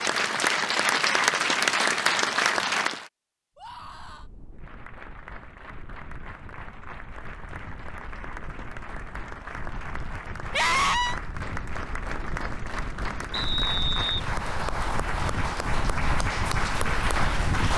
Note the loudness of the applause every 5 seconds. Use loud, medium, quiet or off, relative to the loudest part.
loud, quiet, medium, medium.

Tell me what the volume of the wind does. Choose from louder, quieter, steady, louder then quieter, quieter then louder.
louder.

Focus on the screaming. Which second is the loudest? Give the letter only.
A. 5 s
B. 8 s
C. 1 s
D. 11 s
D.